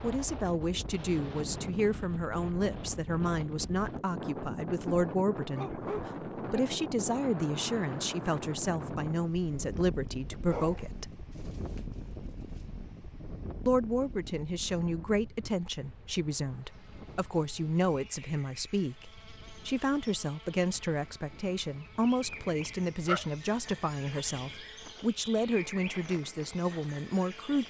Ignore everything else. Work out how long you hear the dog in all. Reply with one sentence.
You can hear the dog for 5 seconds altogether.